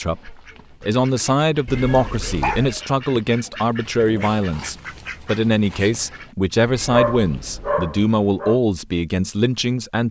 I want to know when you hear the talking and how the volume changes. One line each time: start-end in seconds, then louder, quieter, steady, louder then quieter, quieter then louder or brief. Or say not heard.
0.0-10.0 steady.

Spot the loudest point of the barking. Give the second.
7 s.